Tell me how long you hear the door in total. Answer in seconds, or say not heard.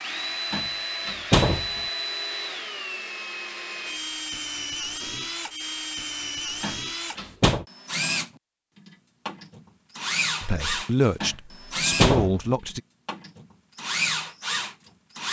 4 s.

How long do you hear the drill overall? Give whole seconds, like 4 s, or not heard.
15 s.